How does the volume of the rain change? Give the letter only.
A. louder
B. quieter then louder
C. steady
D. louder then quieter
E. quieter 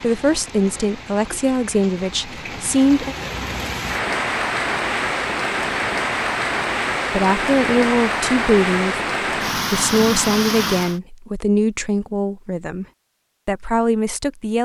A.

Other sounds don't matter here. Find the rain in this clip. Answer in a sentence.
You can hear the rain from 0.0 to 11.0 s.